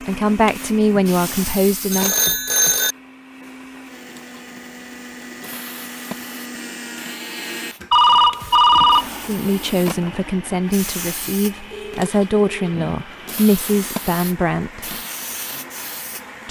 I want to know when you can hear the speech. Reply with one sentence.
The speech can be heard from 0.0 to 2.1 s and from 9.2 to 14.9 s.